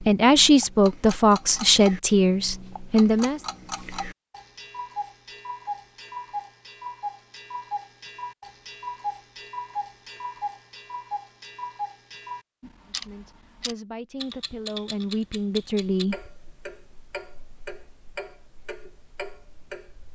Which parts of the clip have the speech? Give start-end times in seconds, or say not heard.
0.0-3.4, 12.8-16.2.